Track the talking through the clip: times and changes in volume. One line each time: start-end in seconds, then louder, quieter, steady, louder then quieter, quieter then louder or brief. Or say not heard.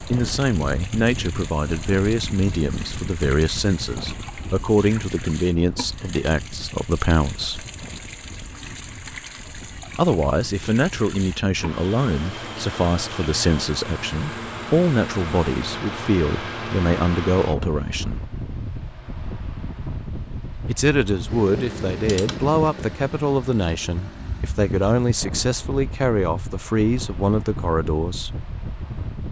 0.0-7.7 steady
9.9-18.2 steady
20.6-28.4 steady.